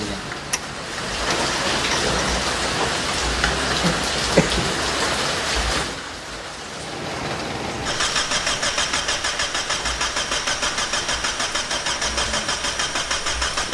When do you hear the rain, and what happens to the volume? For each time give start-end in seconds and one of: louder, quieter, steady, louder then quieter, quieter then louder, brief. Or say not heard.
0.0-13.6 quieter.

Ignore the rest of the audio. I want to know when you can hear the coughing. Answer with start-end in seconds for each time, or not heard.
3.8-4.7.